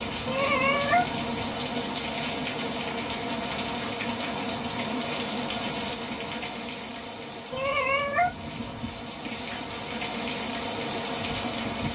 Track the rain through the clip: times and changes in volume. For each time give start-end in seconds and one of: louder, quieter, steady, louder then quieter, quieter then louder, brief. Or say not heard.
0.0-11.9 quieter then louder.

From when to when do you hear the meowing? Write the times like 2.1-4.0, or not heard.
0.2-1.6, 7.5-8.8.